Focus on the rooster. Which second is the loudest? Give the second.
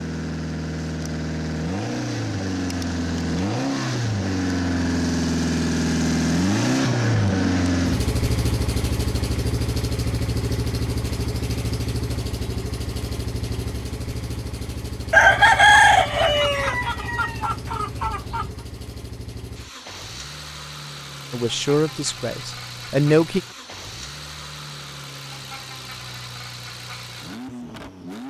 16 s.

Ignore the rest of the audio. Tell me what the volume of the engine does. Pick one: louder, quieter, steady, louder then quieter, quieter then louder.
quieter.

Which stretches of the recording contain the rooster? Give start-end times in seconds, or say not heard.
15.1-18.5.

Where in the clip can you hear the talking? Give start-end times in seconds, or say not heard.
21.3-23.4.